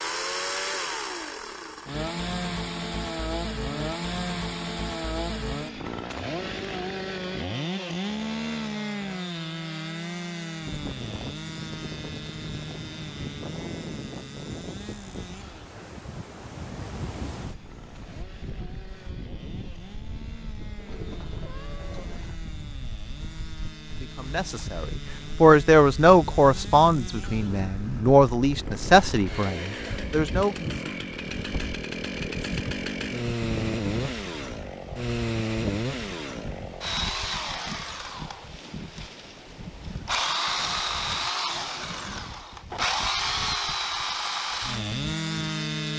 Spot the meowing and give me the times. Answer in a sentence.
You can hear the meowing from 20.8 to 22.4 s.